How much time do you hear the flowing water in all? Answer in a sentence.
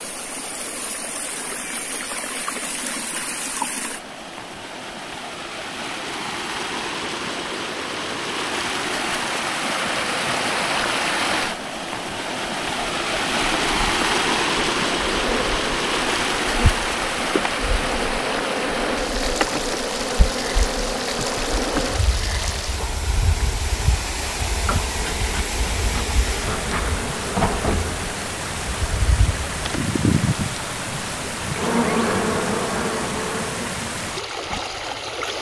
You can hear the flowing water for 35 seconds altogether.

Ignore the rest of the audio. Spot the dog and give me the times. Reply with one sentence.
The dog can't be heard in this clip.